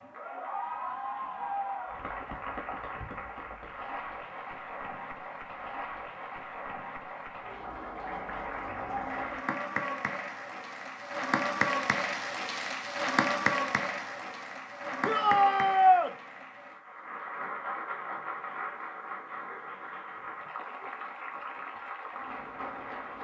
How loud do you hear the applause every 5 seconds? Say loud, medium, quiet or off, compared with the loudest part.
medium, medium, loud, medium, medium.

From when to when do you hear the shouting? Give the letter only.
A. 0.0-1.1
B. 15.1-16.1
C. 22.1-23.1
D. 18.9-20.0
B.